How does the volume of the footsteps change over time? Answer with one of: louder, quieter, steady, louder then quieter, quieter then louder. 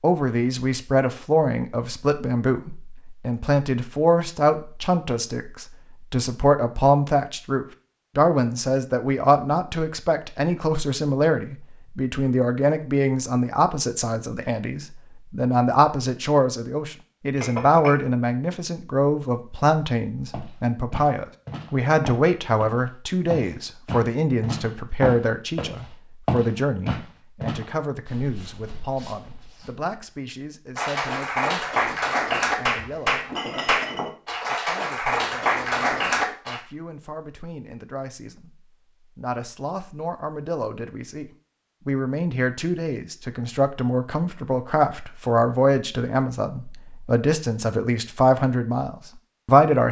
louder then quieter.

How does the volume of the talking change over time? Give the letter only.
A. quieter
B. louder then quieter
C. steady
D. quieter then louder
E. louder
D.